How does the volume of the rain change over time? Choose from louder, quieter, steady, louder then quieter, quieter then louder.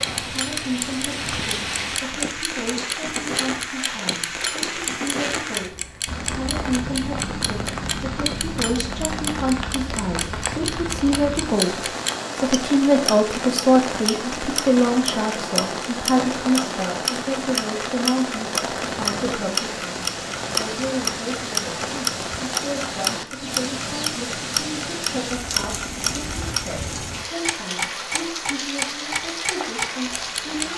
steady.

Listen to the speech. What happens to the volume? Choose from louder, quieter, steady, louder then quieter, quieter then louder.
louder then quieter.